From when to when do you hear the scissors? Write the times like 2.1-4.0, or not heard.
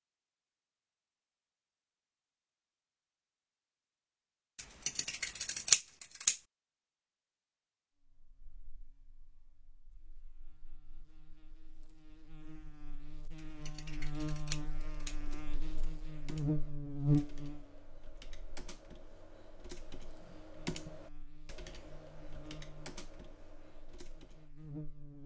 4.5-6.4, 13.3-15.2.